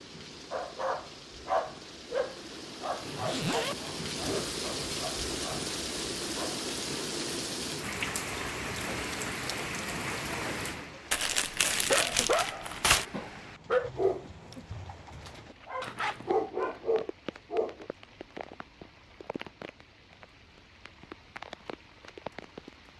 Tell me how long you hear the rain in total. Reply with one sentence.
The rain can be heard for 23 seconds in total.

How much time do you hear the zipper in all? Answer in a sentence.
The zipper can be heard for 2 seconds in total.